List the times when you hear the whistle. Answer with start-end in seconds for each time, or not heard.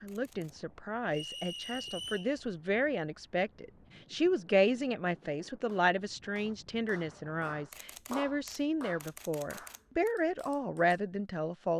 1.1-2.4.